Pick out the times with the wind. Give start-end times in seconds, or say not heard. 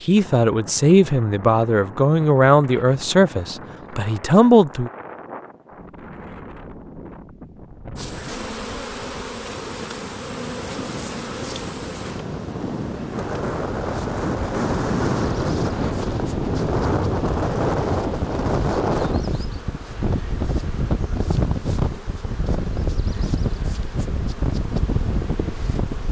0.0-26.0.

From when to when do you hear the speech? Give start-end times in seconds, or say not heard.
0.0-4.9.